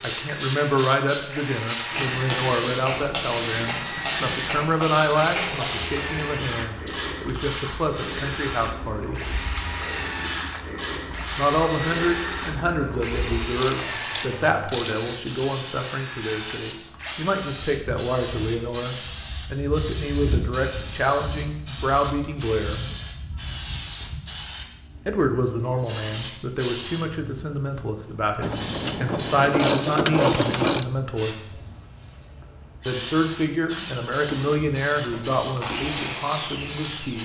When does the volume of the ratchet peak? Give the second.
30 s.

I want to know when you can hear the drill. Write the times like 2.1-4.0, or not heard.
0.0-17.1, 33.6-37.2.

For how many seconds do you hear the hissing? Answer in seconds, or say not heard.
37 s.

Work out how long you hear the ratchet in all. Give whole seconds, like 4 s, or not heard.
6 s.